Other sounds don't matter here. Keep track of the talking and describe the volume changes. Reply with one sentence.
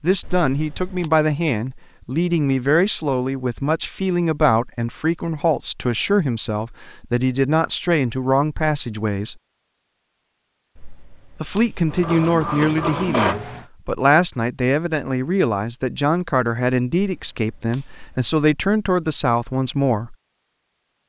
The volume of the talking stays about the same.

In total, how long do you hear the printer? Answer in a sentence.
You can hear the printer for 2 seconds altogether.